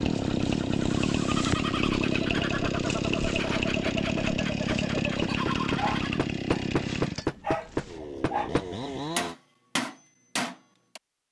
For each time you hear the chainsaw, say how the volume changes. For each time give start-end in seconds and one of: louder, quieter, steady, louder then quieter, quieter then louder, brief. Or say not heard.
0.0-9.3 quieter.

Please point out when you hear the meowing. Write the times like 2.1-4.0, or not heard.
not heard.